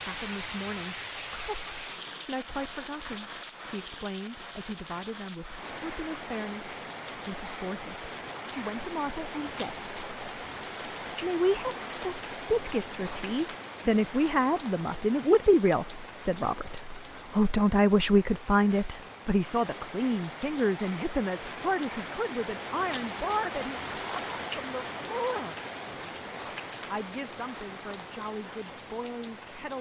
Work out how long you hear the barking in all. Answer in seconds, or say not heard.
not heard.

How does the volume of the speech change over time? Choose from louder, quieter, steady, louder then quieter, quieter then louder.
louder then quieter.